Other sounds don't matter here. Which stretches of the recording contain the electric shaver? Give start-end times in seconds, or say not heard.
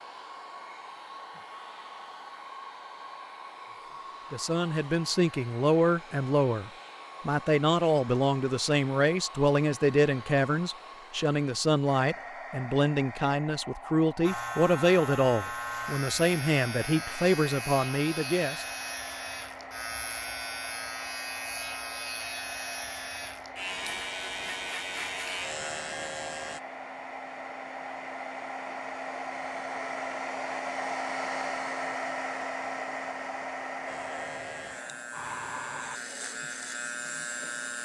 14.2-26.6, 33.9-37.8.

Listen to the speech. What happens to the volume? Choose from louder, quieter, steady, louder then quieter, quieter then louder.
steady.